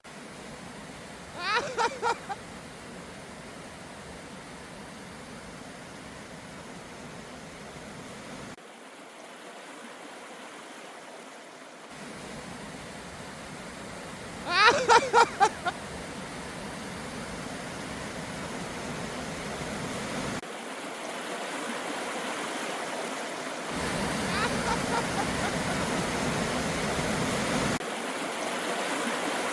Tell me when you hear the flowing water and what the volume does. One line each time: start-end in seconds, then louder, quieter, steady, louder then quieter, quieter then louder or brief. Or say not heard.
0.0-29.4 louder.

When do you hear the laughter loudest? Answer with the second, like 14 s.
15 s.